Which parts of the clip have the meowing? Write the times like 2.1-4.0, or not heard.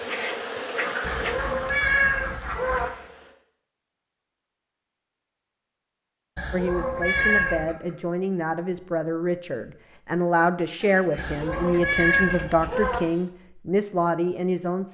1.0-2.9, 6.3-7.7, 11.2-13.0.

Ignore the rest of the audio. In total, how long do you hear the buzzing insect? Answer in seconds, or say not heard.
3 s.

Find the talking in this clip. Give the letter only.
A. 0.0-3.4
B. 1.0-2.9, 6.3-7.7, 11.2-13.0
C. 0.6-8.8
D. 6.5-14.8
D.